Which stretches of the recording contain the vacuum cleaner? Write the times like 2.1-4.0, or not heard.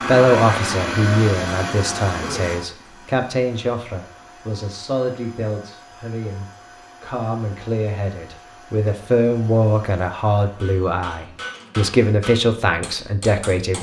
0.0-12.2.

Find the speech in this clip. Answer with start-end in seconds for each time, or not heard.
0.1-13.7.